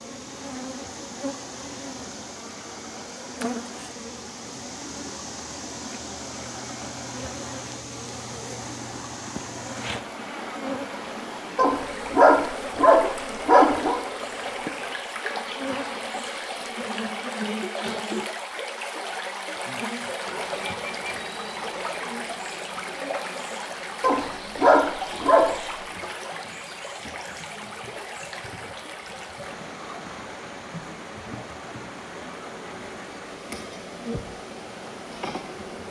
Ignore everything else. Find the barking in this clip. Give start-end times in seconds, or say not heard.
11.6-13.9, 24.0-25.6.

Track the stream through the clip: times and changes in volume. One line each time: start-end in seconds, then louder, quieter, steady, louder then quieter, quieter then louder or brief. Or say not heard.
0.0-35.8 louder then quieter.